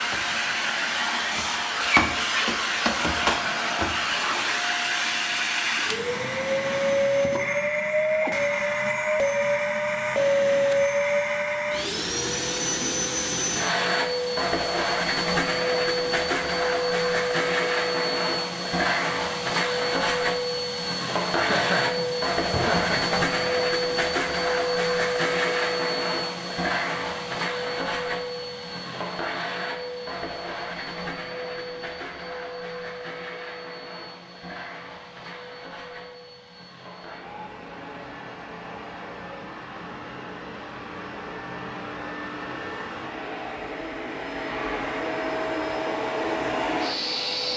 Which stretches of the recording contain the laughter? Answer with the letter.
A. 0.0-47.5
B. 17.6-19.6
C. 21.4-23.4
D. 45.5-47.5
C.